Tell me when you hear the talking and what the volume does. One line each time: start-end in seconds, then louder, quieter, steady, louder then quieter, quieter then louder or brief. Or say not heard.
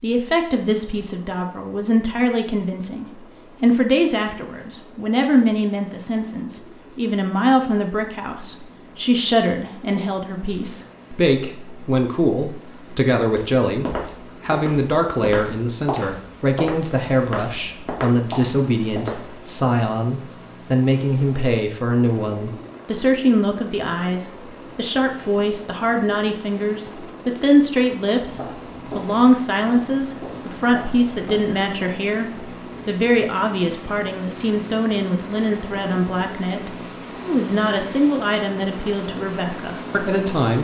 0.0-40.5 steady.